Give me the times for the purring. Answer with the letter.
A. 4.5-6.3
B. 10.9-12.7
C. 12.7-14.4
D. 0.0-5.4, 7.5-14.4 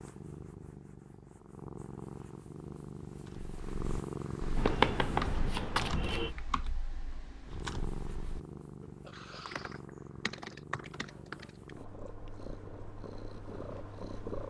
D.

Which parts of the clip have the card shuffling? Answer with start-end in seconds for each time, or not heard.
4.5-6.3.